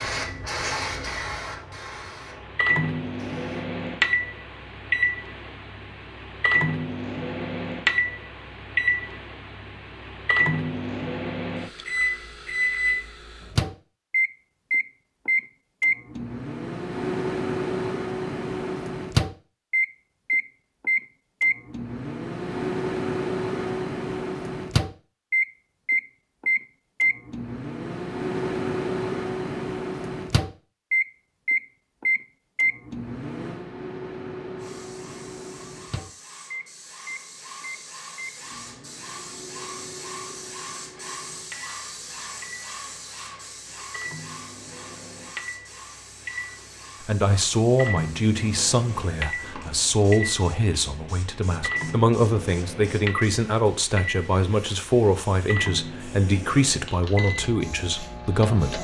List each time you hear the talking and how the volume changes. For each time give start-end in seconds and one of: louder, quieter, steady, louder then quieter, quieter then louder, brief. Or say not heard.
47.0-58.7 steady.